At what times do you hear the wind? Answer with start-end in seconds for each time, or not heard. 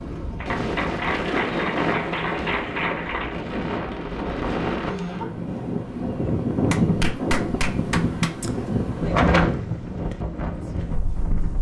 0.0-11.5.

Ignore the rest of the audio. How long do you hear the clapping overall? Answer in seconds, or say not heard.
5 s.